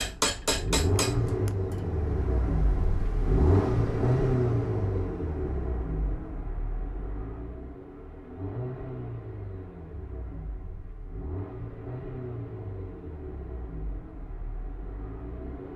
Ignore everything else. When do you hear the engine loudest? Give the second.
4 s.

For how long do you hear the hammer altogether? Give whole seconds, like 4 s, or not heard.
2 s.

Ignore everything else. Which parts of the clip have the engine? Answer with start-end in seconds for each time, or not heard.
0.0-15.7.